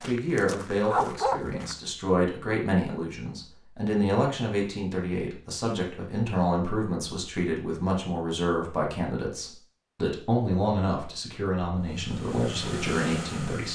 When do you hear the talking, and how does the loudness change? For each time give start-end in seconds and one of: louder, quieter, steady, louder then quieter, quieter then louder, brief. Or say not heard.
0.0-13.7 steady.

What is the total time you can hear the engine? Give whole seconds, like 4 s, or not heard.
2 s.